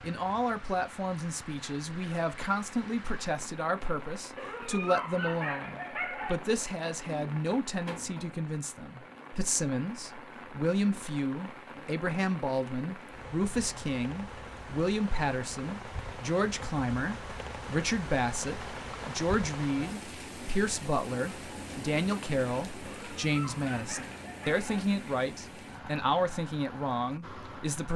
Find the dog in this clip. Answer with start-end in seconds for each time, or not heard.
4.3-6.4, 22.8-24.9.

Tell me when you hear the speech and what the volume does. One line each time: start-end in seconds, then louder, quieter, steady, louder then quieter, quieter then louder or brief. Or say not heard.
0.0-27.9 steady.